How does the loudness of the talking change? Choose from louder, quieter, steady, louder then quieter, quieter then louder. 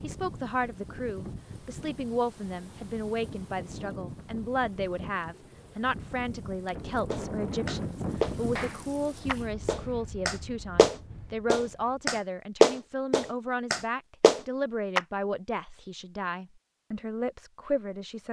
steady.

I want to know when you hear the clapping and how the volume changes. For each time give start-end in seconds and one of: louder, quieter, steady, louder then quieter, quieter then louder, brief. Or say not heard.
7.1-15.0 louder then quieter.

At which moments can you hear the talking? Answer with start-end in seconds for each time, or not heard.
0.0-18.2.